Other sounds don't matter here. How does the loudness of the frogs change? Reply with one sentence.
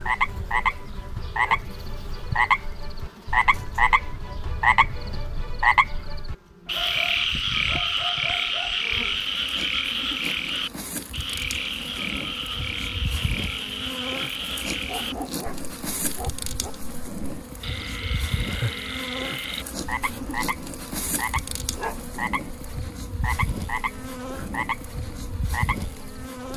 The loudness of the frogs goes down.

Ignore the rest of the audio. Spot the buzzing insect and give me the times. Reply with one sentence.
You can hear the buzzing insect from 0.0 to 26.5 s.